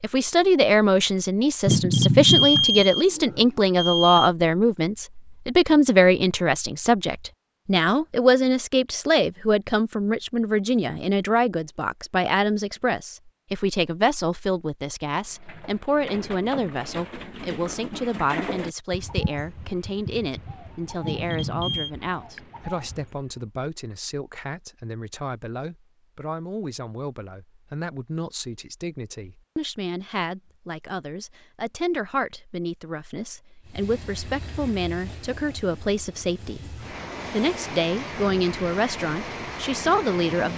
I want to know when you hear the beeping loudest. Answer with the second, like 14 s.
2 s.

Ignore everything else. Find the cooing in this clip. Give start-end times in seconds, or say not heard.
15.2-23.4.